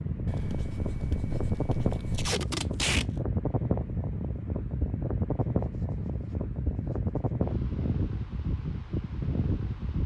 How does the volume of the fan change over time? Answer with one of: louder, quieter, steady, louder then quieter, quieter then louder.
steady.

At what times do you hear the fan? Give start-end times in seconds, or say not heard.
0.0-10.0.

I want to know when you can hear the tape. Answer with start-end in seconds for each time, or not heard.
2.1-3.0.